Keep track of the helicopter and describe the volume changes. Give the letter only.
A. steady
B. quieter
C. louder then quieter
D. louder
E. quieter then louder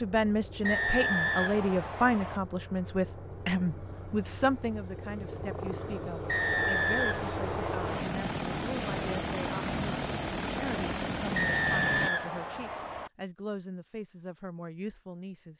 D.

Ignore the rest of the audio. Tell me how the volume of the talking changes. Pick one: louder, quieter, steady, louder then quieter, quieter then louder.
quieter.